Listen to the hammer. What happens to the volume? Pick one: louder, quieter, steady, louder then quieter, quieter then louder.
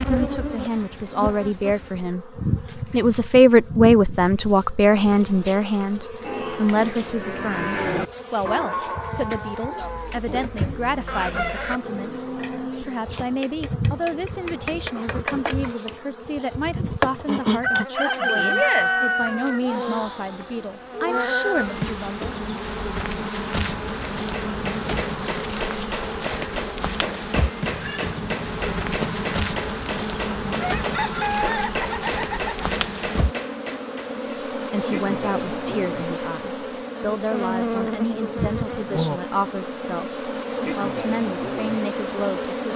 steady.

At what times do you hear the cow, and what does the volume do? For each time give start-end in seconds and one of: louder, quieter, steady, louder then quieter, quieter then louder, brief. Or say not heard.
6.2-13.4 quieter then louder.